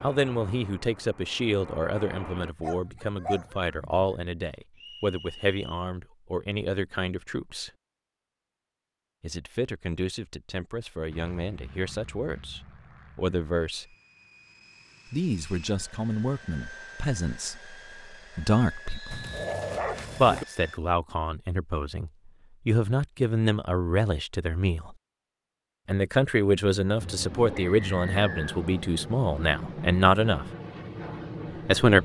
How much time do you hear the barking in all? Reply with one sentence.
The barking can be heard for 3 seconds in total.